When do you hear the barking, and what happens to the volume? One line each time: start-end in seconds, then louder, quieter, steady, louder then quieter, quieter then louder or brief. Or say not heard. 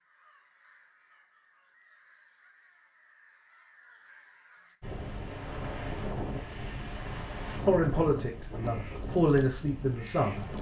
not heard.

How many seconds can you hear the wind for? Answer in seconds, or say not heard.
6 s.